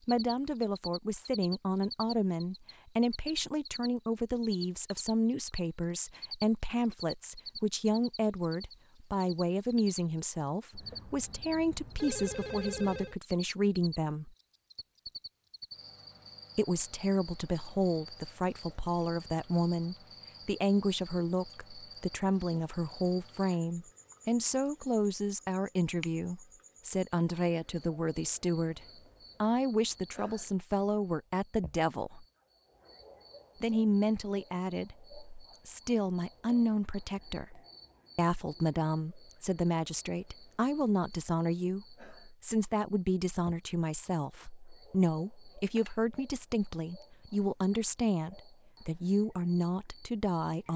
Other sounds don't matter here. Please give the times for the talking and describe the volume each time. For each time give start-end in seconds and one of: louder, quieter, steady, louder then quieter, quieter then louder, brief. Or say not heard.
0.1-14.3 steady
16.6-32.2 steady
33.6-50.7 steady.